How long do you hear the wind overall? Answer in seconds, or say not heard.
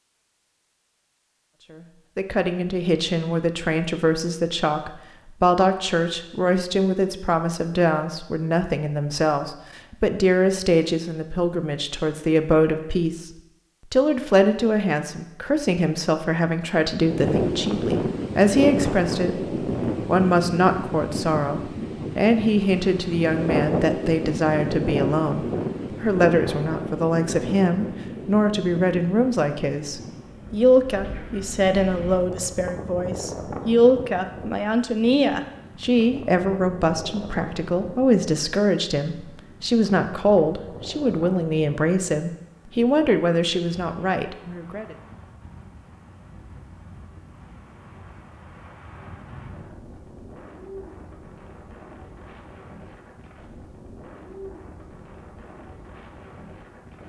40 s.